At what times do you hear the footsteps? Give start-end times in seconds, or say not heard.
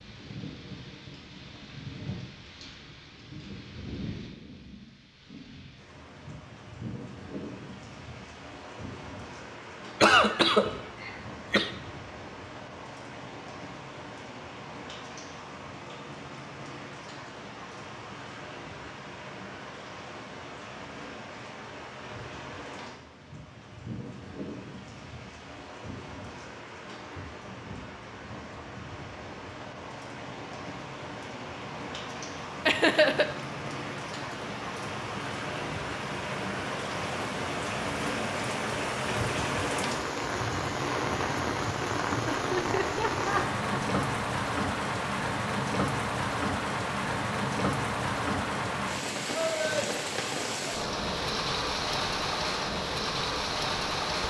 not heard.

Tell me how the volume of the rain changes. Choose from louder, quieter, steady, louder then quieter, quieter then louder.
louder.